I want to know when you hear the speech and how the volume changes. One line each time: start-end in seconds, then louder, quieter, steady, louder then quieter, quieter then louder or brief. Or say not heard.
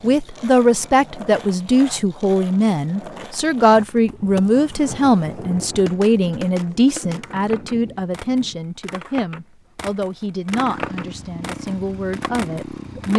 0.0-13.1 quieter.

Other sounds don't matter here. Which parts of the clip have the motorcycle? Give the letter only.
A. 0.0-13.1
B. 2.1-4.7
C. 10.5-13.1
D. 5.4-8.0
C.